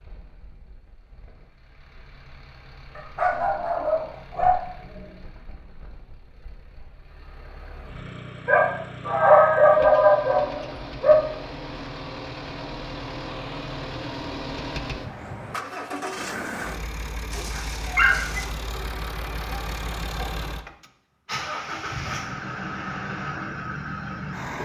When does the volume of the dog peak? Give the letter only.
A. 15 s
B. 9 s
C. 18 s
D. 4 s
B.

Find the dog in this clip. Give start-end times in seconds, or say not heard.
3.0-5.1, 8.4-11.2, 17.3-18.4.